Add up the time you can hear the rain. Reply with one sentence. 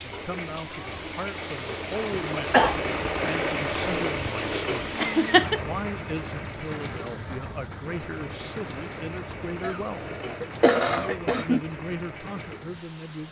The rain can be heard for 13 seconds in total.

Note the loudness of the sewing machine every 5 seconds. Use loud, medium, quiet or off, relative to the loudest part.
loud, medium, medium.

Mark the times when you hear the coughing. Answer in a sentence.
You can hear the coughing from 1.9 to 2.8 s, from 5.0 to 5.6 s and from 9.6 to 11.6 s.